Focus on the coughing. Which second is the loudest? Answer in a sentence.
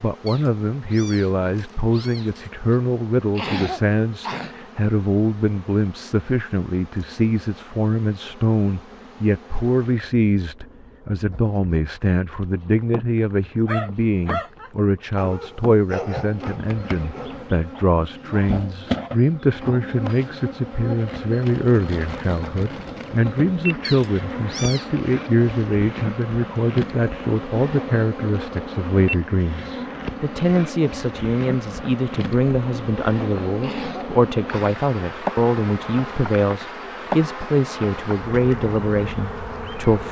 The volume of the coughing peaks at 4 seconds.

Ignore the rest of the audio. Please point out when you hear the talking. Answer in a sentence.
You can hear the talking from 0.0 to 40.0 s.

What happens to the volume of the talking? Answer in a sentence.
The volume of the talking stays about the same.